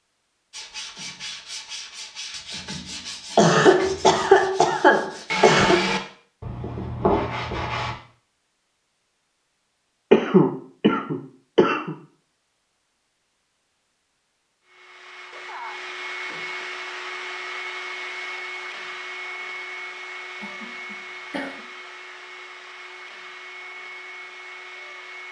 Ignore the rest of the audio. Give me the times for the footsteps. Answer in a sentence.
The footsteps can't be heard in this clip.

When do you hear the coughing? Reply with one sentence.
You can hear the coughing from 3.4 to 5.8 s, from 10.1 to 11.9 s and from 20.4 to 21.6 s.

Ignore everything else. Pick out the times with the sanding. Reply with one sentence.
You can hear the sanding from 0.5 to 8.0 s.